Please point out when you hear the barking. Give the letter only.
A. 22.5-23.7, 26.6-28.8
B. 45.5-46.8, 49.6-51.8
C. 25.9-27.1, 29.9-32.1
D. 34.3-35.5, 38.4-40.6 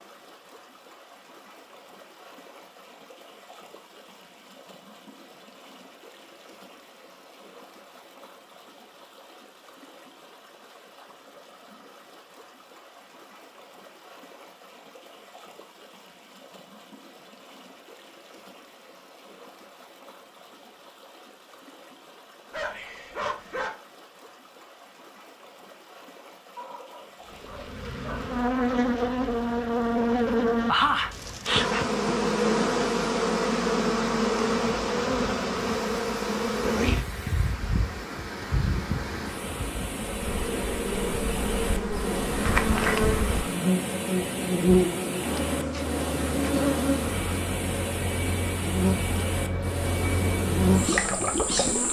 A.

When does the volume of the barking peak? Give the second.
23 s.